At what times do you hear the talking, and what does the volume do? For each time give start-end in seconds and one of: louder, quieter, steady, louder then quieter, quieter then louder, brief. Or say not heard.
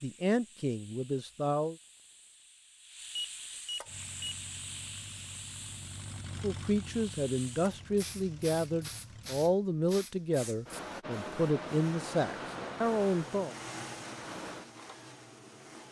0.0-1.8 brief
6.4-13.6 steady.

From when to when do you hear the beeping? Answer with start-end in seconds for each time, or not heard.
3.1-4.3.